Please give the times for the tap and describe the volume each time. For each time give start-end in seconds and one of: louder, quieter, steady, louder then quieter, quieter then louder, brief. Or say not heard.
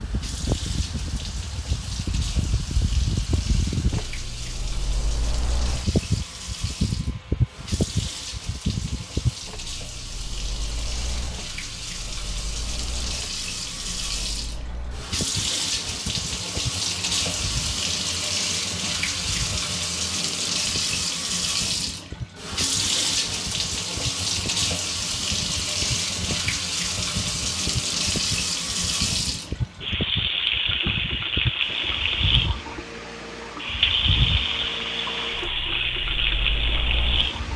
0.0-37.5 louder.